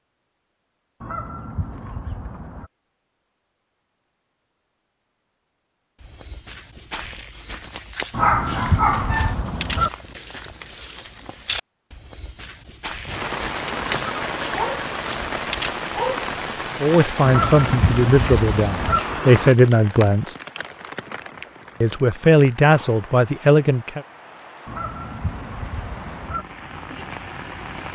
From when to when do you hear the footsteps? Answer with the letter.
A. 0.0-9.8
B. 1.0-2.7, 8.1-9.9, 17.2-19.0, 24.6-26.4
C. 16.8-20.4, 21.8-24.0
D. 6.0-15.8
D.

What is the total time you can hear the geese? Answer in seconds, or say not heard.
7 s.